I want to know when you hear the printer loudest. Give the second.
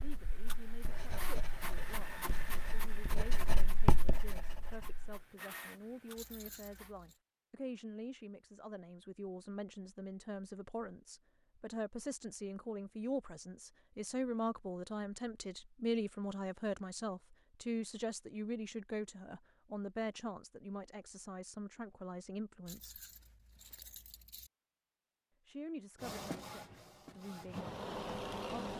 28 s.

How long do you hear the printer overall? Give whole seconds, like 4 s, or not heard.
10 s.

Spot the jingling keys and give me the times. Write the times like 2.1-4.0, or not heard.
6.2-7.2, 22.6-24.5.